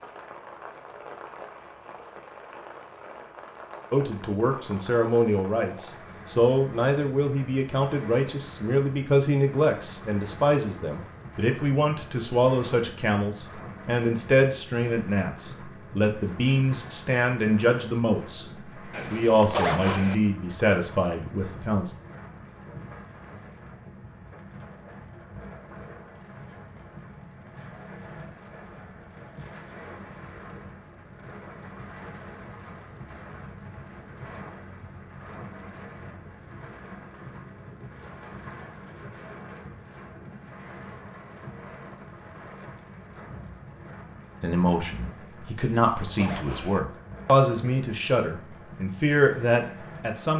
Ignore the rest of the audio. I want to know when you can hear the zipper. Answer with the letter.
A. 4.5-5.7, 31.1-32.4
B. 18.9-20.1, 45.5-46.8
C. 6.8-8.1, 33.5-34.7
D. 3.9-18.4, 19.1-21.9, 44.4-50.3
B.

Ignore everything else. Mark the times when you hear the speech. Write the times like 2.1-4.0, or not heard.
3.9-18.4, 19.1-21.9, 44.4-50.3.